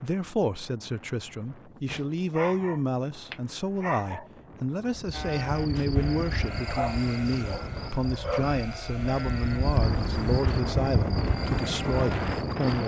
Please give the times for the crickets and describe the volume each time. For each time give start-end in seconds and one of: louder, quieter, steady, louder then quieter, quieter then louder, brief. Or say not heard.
4.9-12.8 quieter then louder.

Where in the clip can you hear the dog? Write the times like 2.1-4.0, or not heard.
2.3-4.3, 6.7-8.6.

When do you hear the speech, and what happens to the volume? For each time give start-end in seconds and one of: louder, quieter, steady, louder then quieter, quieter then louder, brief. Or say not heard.
0.0-12.8 steady.